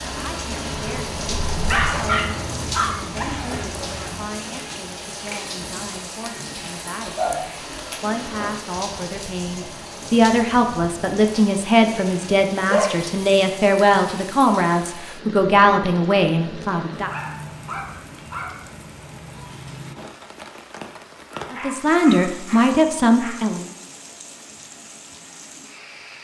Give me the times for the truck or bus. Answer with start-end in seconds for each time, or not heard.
0.0-4.3.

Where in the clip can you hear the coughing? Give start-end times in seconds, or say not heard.
not heard.